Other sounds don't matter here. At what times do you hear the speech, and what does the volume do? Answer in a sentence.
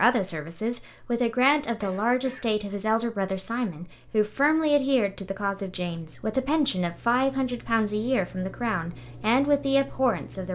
The speech can be heard from 0.0 to 10.5 s, at a steady volume.